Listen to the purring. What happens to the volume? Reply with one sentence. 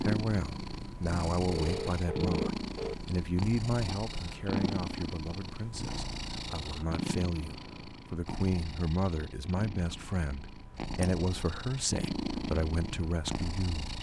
The loudness of the purring goes down, then up.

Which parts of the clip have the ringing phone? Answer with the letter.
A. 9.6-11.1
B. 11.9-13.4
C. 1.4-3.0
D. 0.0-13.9
C.